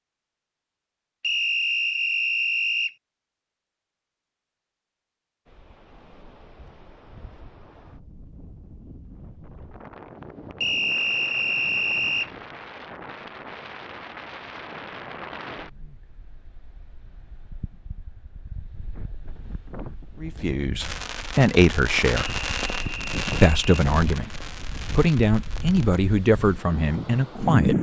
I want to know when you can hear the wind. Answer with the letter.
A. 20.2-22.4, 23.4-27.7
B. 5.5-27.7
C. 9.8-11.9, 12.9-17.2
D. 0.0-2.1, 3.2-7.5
B.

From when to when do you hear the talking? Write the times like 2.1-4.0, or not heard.
20.2-22.4, 23.4-27.7.